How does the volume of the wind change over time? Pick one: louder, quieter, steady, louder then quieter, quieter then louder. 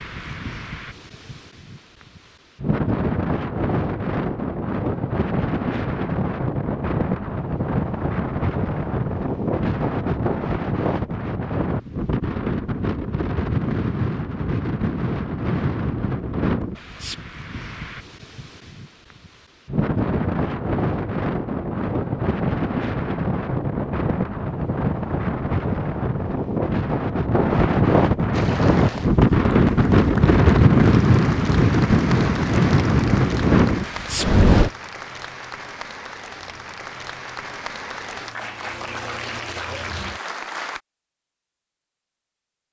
louder.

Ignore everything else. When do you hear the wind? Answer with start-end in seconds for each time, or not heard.
0.0-34.7.